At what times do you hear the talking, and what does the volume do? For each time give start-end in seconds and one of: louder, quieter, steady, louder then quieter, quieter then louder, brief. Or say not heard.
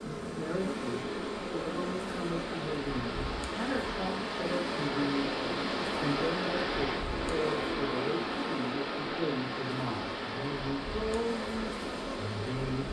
0.0-12.8 steady.